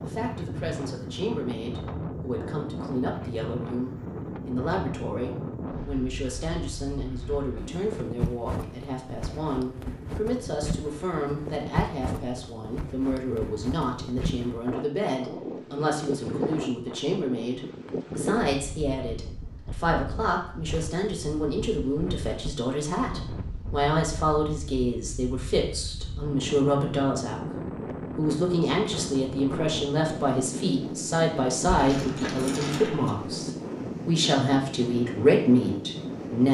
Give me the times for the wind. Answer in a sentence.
The wind can be heard from 0.0 to 36.4 s.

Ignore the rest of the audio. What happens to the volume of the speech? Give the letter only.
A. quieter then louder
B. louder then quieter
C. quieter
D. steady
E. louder
E.